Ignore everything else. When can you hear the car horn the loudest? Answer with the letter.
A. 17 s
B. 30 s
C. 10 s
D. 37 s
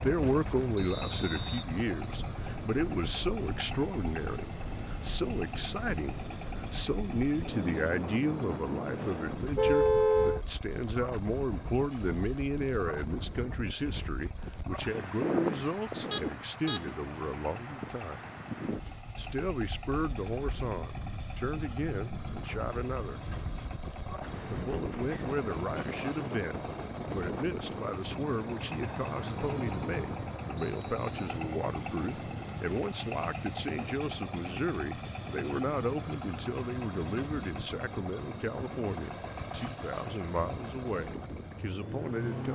C.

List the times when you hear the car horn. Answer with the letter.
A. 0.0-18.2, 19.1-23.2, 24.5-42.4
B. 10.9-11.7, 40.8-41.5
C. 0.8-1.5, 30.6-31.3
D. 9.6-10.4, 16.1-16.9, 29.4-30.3
D.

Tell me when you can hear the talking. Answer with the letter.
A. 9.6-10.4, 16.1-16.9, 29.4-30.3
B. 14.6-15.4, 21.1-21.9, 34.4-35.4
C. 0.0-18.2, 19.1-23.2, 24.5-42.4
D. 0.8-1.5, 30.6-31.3
C.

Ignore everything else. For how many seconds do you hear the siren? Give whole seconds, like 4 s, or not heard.
not heard.